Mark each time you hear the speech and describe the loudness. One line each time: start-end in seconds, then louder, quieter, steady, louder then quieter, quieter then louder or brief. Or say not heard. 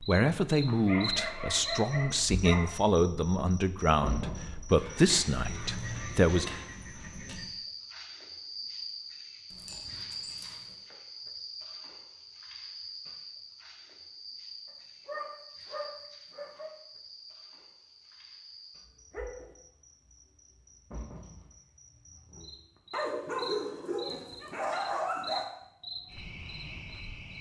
0.0-6.5 steady.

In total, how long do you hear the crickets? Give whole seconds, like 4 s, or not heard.
27 s.